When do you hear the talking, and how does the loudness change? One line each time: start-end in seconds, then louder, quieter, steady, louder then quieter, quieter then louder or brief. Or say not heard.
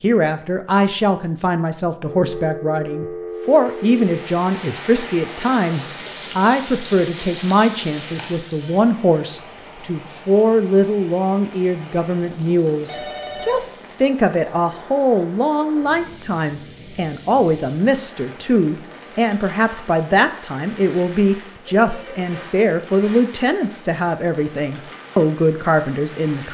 0.0-26.4 steady.